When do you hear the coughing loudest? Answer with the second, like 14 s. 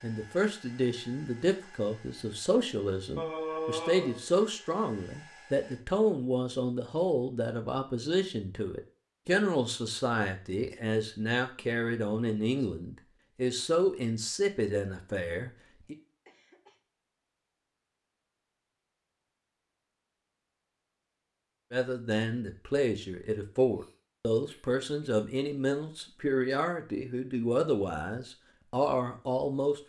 4 s.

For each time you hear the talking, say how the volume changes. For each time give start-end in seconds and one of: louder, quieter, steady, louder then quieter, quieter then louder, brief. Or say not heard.
0.0-15.9 steady
21.7-29.8 steady.